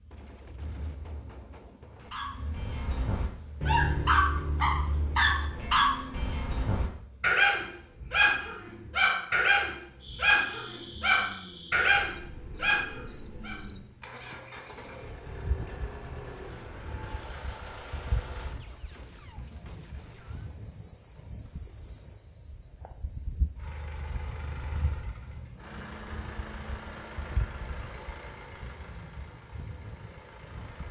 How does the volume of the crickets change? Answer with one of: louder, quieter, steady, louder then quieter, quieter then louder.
steady.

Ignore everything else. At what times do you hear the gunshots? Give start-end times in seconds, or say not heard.
0.1-2.1, 16.2-20.6.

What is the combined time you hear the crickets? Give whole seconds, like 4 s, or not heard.
21 s.